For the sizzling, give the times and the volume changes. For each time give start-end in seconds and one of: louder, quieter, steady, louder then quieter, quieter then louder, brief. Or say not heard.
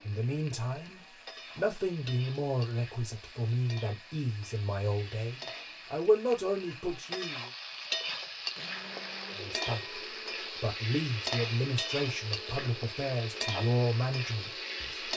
0.0-15.1 louder.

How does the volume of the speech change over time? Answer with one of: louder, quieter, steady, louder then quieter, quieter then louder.
steady.